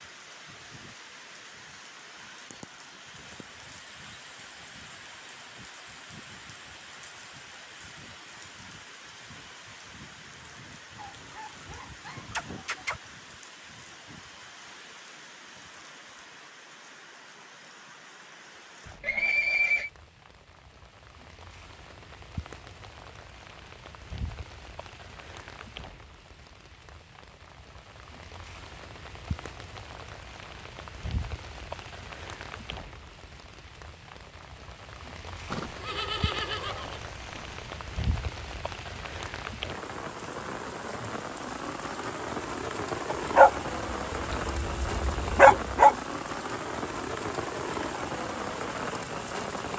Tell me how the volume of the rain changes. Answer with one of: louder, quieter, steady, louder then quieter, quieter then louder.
louder.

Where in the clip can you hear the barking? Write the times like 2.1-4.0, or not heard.
11.0-13.0, 43.1-46.0.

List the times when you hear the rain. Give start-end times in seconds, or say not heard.
0.0-49.7.